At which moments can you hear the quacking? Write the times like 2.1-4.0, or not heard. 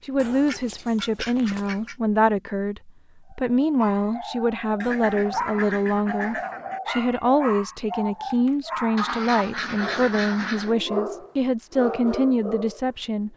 0.1-1.9, 4.8-6.8, 8.9-10.8.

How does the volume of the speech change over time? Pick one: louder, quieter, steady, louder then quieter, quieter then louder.
steady.